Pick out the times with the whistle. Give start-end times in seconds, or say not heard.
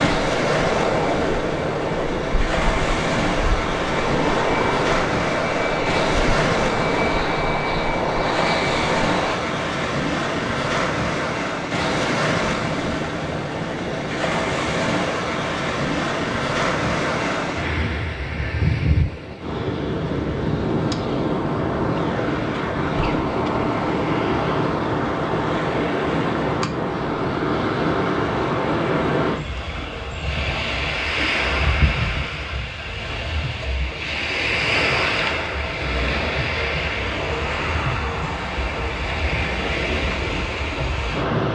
not heard.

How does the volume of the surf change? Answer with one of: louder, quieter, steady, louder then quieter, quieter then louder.
steady.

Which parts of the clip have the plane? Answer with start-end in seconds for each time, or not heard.
0.0-9.4.